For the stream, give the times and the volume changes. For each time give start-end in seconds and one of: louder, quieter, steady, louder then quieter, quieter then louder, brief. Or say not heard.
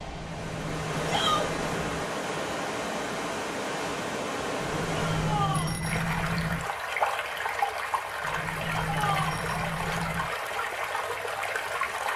0.0-12.1 steady.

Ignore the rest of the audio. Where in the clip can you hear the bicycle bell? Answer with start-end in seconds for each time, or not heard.
0.0-2.0, 4.6-6.6, 8.2-10.2.